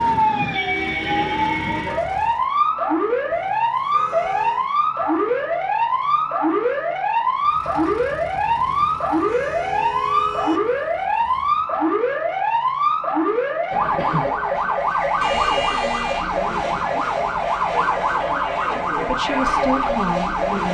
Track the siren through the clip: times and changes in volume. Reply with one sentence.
The siren can be heard from 0.0 to 20.6 s, at a steady volume.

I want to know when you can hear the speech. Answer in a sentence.
The speech can be heard from 18.9 to 20.6 s.